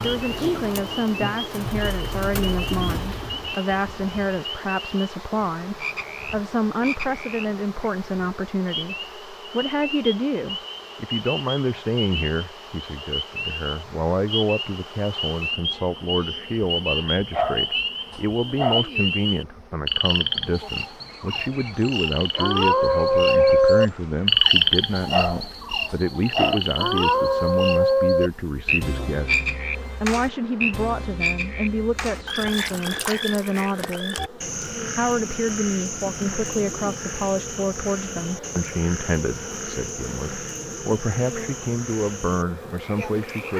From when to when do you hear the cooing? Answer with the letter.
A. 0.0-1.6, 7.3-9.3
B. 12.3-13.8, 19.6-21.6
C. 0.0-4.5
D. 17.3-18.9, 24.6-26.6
C.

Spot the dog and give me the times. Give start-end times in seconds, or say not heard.
17.3-18.9, 24.6-26.6.